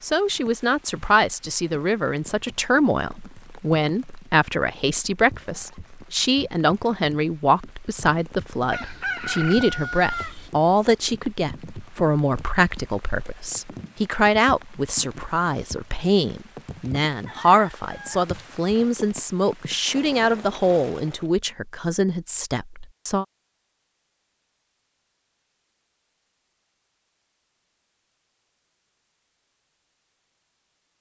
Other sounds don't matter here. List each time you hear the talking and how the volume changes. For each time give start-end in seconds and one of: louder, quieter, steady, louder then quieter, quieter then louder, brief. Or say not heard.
0.0-23.2 steady.